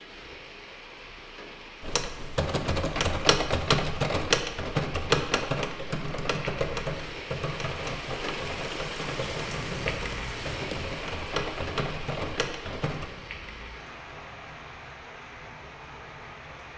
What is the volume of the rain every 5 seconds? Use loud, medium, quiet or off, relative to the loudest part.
medium, loud, loud, medium.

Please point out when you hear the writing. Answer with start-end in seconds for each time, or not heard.
9.2-10.9.